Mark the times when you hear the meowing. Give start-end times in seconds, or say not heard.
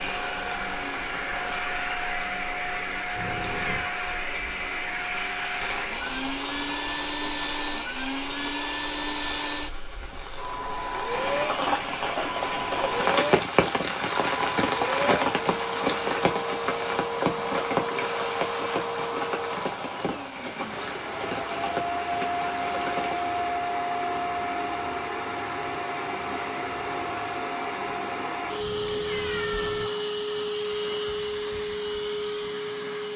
3.1-4.0, 28.6-29.9.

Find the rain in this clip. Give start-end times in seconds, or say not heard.
0.0-23.4.